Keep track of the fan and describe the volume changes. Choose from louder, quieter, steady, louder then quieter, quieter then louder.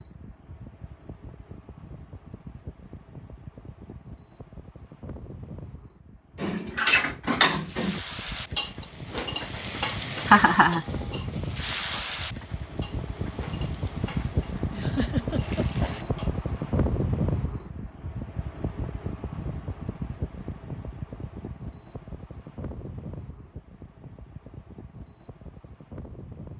louder then quieter.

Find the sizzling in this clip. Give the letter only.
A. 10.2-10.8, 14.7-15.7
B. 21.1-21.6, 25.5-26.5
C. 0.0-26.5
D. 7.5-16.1
D.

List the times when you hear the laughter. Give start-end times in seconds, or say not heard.
10.2-10.8, 14.7-15.7.